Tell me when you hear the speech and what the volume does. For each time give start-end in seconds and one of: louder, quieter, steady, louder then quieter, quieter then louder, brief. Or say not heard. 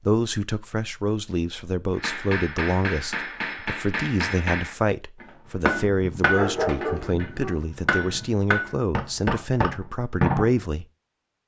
0.1-10.8 steady.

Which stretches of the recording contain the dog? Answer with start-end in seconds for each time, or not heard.
6.3-7.7.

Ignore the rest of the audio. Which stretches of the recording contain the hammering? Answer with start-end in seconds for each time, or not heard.
1.9-10.5.